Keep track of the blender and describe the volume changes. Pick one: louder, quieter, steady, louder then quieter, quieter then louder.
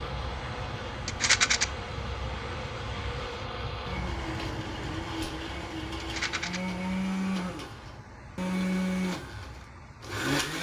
louder.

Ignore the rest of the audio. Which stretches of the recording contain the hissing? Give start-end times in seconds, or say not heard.
0.0-10.2.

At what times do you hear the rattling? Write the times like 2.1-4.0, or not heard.
1.1-1.6, 6.0-6.6.